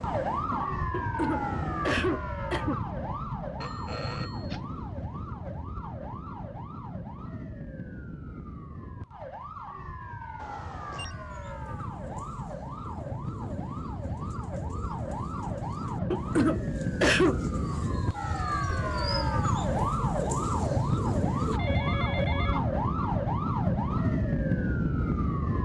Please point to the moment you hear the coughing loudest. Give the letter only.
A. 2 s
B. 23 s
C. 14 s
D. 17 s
D.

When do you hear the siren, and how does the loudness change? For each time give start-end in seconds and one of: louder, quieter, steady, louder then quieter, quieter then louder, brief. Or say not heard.
0.0-25.5 quieter then louder.